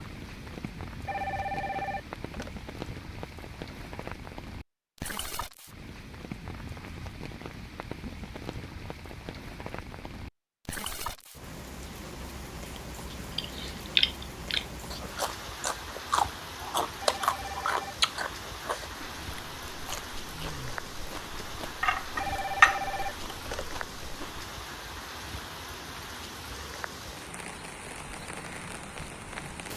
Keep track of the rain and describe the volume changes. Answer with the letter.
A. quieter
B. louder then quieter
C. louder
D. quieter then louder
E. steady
E.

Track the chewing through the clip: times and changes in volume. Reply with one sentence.
You can hear the chewing from 13.3 to 24.4 s, getting quieter then louder.